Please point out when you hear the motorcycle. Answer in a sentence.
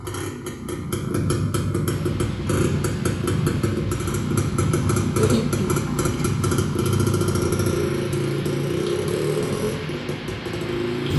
You can hear the motorcycle from 0.0 to 11.1 s.